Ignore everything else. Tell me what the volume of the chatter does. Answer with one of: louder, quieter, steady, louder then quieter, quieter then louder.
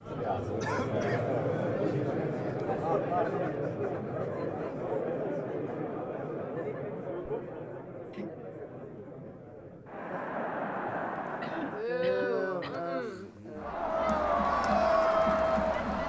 quieter then louder.